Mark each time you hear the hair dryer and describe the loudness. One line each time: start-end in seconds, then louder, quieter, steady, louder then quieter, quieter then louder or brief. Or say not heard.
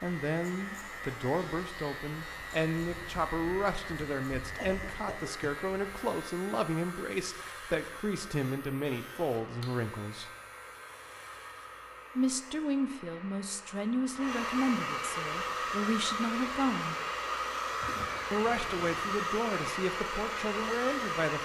0.0-21.3 louder.